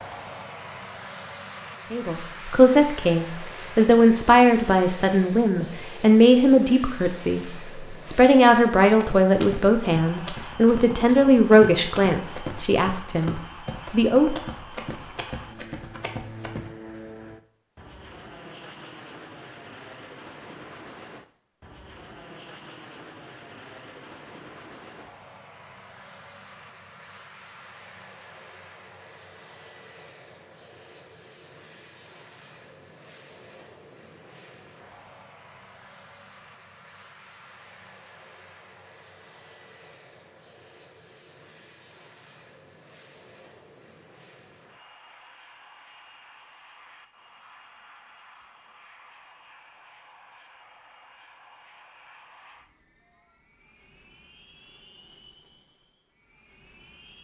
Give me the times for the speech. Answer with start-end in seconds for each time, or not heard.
1.9-14.3.